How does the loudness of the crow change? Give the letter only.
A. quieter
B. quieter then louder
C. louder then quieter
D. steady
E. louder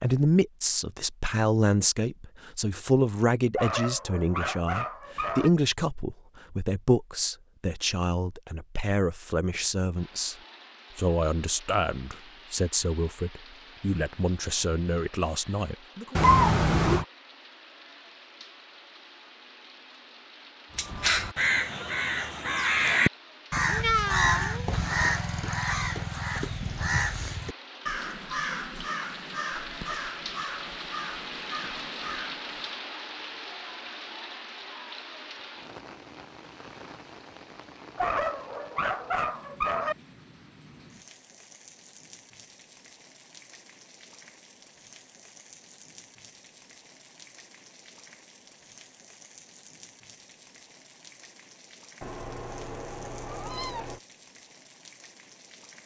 A.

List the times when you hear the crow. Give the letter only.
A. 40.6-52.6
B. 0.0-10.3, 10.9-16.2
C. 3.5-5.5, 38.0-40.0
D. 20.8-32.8
D.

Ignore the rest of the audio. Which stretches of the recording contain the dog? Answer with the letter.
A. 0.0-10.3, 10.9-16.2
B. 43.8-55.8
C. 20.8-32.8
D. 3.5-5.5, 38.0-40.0
D.